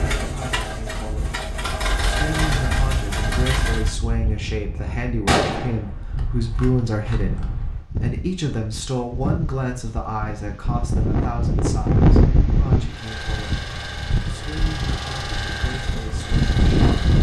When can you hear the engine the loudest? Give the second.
2 s.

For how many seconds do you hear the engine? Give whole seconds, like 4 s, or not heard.
8 s.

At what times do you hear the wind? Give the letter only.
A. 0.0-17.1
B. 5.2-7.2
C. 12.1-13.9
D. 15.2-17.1
A.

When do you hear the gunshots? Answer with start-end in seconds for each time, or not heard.
5.2-7.2.